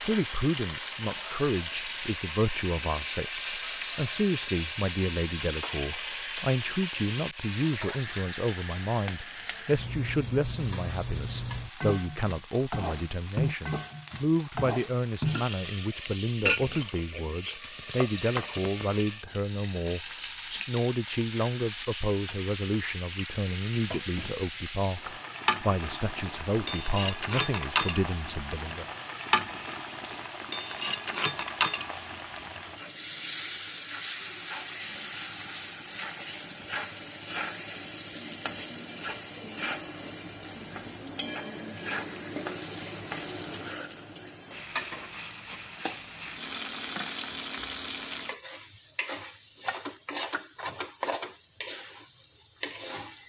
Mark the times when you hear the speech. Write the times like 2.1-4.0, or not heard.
0.0-28.9.